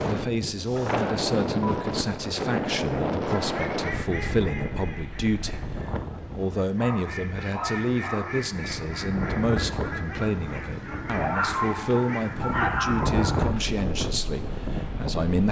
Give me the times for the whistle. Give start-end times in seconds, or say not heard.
not heard.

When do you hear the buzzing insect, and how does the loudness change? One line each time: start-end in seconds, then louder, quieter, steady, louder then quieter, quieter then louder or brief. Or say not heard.
not heard.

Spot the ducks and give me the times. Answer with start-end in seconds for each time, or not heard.
3.2-12.6.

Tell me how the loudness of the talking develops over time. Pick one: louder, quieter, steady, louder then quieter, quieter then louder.
steady.